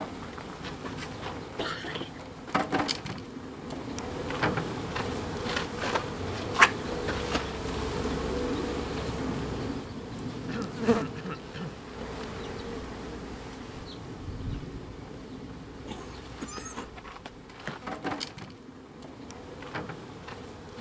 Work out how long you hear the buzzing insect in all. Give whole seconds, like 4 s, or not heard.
21 s.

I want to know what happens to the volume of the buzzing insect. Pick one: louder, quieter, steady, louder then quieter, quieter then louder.
louder then quieter.